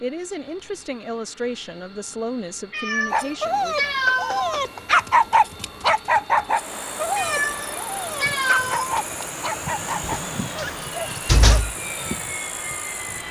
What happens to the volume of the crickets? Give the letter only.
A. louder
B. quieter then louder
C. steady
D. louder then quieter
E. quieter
C.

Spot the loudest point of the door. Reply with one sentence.
The loudest moment of the door is at 11 seconds.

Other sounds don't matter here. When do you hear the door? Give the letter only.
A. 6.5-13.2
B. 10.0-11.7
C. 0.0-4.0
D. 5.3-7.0
B.